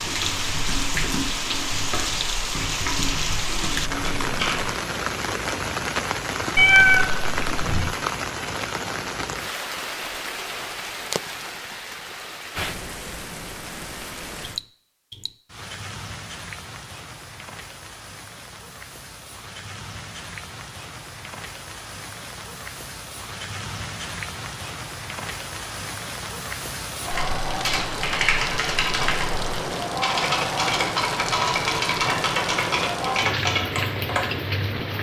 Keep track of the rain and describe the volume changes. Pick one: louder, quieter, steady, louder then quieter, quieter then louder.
quieter then louder.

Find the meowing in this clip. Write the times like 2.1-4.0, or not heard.
6.5-7.9.